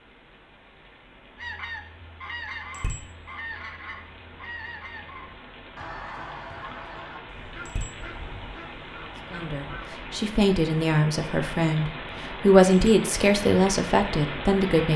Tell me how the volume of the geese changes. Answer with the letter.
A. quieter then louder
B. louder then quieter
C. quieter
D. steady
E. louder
C.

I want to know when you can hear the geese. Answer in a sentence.
The geese can be heard from 1.4 to 9.9 s.